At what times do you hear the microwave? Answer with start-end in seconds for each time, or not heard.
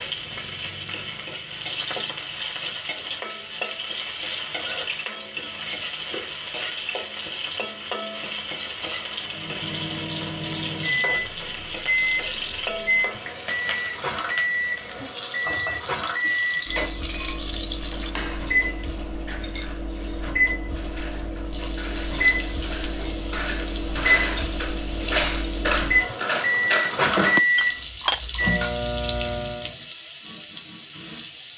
9.2-29.8.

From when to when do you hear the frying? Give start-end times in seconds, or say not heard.
0.0-18.1, 21.5-31.5.